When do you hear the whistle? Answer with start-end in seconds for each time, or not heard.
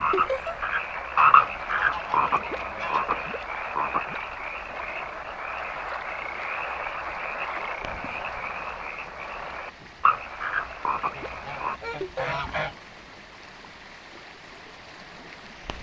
not heard.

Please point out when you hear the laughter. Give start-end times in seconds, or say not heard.
0.1-0.6, 12.0-12.4.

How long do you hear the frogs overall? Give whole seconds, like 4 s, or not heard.
12 s.